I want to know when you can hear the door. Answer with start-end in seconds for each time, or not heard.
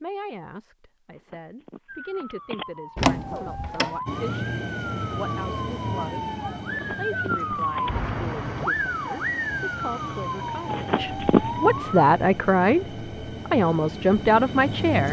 3.0-4.0.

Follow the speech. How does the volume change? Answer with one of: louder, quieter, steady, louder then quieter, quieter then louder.
louder.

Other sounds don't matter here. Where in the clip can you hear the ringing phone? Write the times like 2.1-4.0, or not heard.
1.3-2.6, 6.7-8.1, 10.7-11.4.